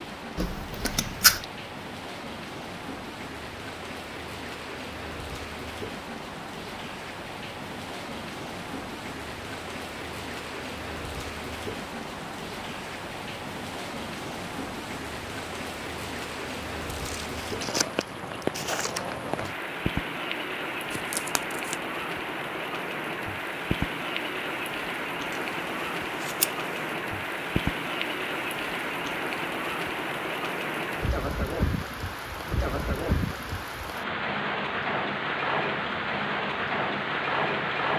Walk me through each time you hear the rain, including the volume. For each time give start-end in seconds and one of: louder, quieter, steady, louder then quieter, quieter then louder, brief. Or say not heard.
0.0-37.9 louder.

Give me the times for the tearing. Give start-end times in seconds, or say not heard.
20.9-21.8.